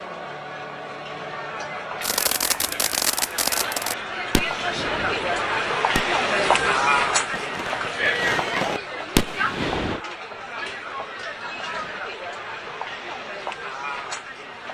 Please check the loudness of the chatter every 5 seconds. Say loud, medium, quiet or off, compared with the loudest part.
medium, loud, medium.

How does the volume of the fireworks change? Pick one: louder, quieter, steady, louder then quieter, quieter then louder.
quieter then louder.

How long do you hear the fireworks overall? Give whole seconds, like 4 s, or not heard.
8 s.